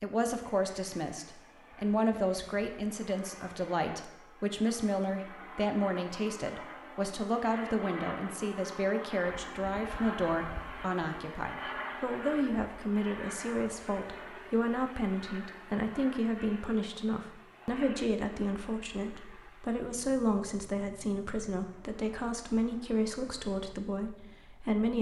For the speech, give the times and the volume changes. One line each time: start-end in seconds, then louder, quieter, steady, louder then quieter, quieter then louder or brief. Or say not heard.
0.0-24.9 steady.